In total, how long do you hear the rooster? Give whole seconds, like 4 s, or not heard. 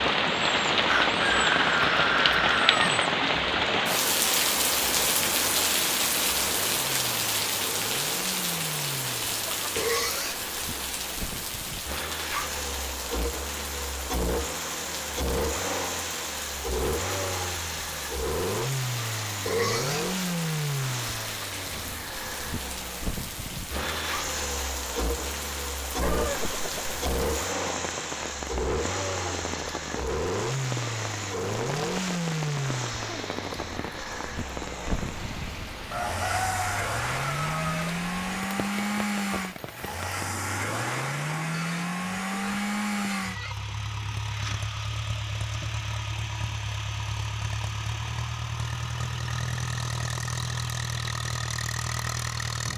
5 s.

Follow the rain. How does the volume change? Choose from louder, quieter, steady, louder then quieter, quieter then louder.
quieter.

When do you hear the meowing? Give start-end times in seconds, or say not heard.
not heard.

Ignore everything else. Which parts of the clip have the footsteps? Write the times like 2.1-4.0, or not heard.
not heard.